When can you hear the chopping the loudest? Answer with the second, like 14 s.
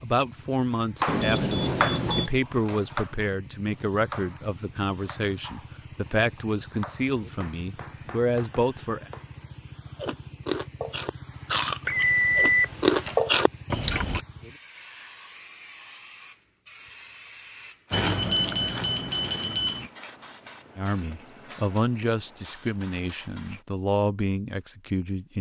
2 s.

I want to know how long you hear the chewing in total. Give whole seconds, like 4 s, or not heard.
6 s.